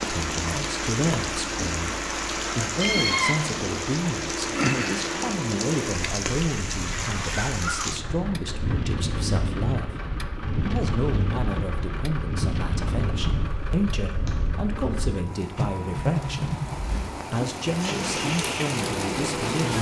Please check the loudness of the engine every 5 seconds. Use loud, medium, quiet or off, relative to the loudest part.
loud, medium, medium, loud.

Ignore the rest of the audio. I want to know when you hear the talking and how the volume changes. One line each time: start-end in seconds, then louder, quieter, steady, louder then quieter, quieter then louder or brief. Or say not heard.
0.0-19.7 steady.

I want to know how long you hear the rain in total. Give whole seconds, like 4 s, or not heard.
20 s.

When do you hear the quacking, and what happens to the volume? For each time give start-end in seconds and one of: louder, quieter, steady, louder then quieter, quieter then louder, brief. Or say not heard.
not heard.